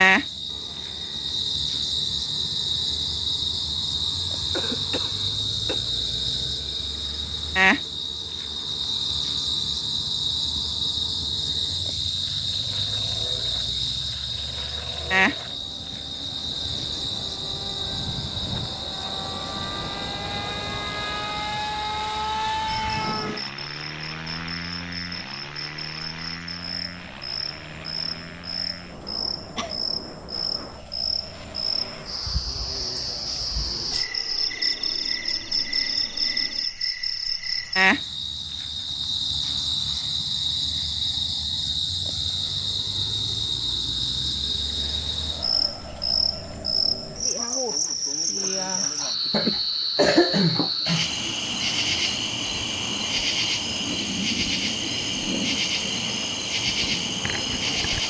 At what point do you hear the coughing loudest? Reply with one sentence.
The volume of the coughing peaks at 50 seconds.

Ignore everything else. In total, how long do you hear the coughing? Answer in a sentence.
The coughing can be heard for 4 seconds in total.